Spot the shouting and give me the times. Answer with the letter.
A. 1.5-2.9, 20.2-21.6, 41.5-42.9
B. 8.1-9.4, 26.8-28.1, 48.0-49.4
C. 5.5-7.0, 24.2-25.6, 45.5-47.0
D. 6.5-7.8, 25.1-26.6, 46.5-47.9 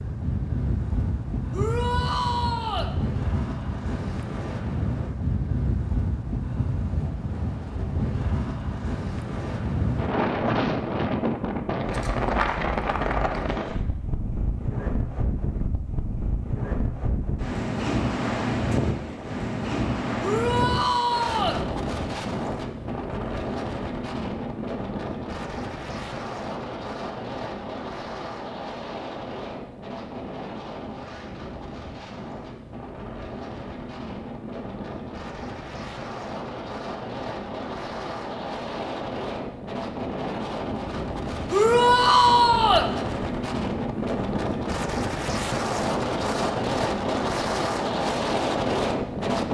A.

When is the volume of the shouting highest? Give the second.
42 s.